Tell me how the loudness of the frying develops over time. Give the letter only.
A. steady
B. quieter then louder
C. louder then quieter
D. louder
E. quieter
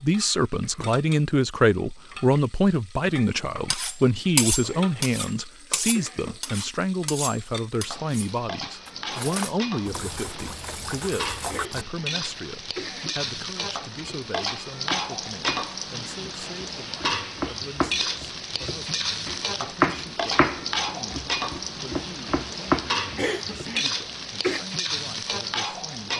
D.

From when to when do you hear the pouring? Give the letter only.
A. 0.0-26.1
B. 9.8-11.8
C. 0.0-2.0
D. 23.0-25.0
B.